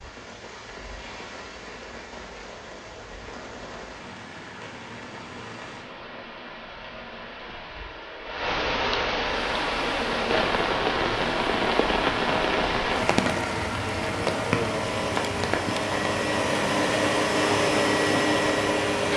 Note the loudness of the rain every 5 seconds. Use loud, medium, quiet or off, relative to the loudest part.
quiet, medium, loud, medium.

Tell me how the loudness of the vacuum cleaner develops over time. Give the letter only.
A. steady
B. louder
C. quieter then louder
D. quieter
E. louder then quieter
B.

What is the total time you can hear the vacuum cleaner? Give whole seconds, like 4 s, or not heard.
10 s.